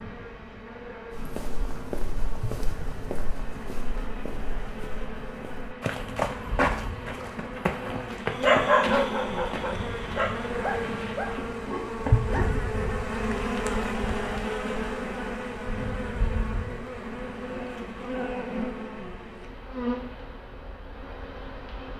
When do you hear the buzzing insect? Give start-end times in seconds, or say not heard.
0.0-21.9.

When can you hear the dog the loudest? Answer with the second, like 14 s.
9 s.